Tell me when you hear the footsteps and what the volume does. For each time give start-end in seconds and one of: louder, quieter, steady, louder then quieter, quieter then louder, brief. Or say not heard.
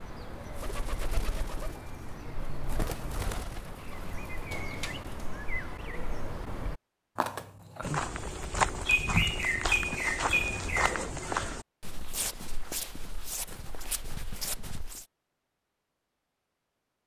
7.8-15.1 quieter.